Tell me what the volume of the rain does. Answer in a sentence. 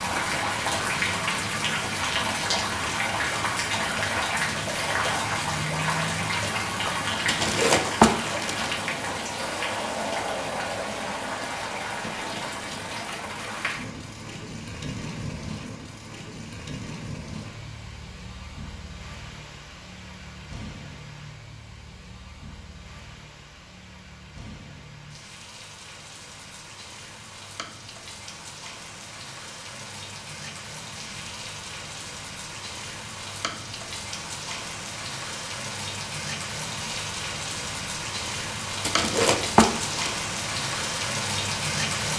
The loudness of the rain goes down, then up.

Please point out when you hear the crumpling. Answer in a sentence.
You can hear the crumpling from 7.2 to 8.8 s and from 38.8 to 40.1 s.